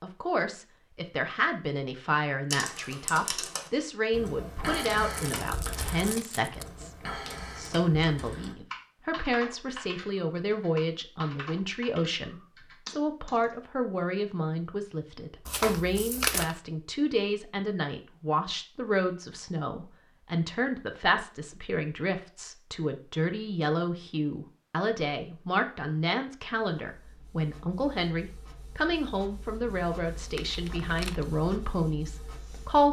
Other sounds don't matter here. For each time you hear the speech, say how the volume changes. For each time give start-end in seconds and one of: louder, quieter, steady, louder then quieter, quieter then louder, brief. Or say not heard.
0.0-32.8 steady.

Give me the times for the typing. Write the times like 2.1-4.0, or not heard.
2.5-13.6.